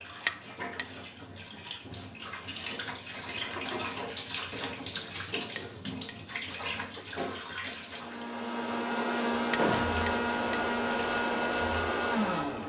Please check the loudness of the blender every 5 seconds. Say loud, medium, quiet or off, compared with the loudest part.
off, loud, loud.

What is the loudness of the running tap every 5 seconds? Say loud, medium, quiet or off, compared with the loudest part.
loud, loud, medium.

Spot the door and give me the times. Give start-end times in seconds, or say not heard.
9.6-10.1.